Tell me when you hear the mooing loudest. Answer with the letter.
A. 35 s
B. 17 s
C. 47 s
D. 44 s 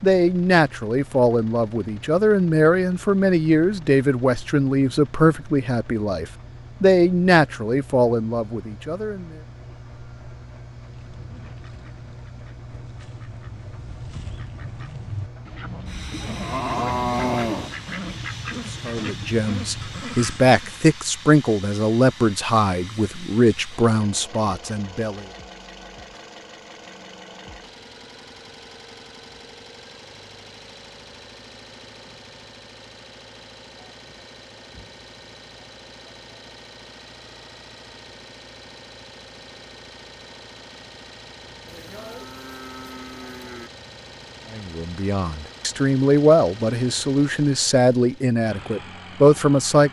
B.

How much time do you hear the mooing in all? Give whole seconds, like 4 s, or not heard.
4 s.